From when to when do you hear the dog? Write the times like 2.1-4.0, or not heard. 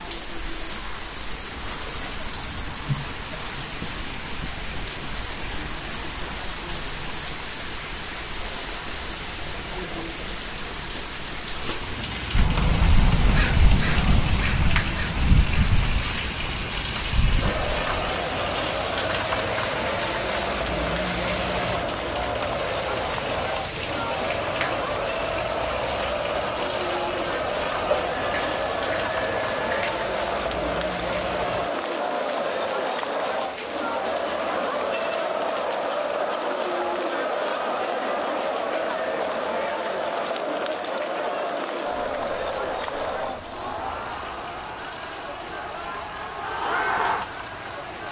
not heard.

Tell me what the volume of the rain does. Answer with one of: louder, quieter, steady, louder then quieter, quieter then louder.
quieter.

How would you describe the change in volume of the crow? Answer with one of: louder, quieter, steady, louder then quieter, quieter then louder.
quieter.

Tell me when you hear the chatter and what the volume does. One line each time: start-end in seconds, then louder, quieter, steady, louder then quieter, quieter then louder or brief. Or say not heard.
17.4-48.0 steady.